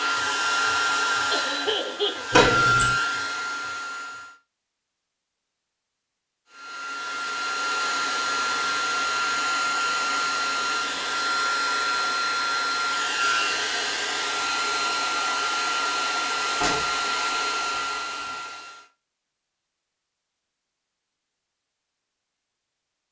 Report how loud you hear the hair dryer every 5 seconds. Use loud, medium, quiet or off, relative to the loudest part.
loud, loud, loud, loud, off.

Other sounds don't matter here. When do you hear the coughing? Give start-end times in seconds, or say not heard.
1.3-2.4.